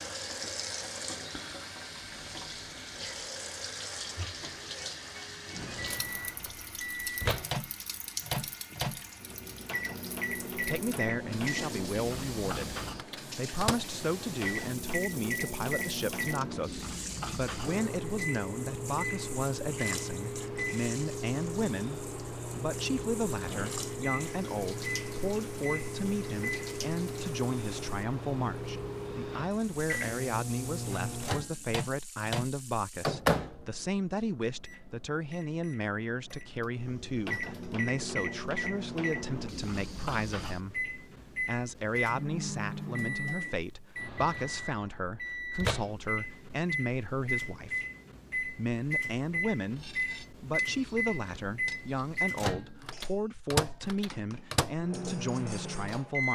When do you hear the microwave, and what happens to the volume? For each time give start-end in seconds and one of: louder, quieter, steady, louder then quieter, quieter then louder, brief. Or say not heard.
5.5-56.3 steady.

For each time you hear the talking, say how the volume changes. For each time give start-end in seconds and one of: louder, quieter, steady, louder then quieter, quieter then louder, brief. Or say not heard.
10.6-56.3 steady.